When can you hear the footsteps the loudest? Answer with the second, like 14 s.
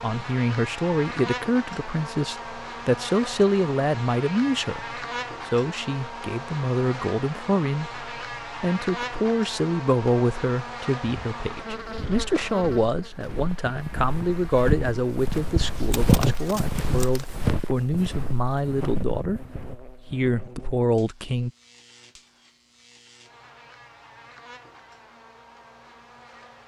16 s.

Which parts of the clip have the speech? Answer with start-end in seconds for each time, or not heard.
0.0-21.5.